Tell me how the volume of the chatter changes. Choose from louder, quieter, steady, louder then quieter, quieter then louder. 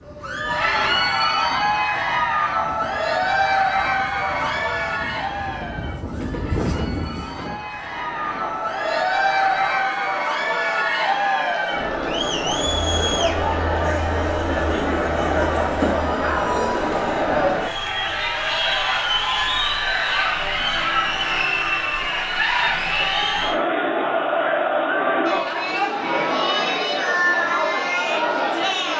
steady.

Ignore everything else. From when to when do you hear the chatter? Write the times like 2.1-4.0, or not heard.
0.1-28.9.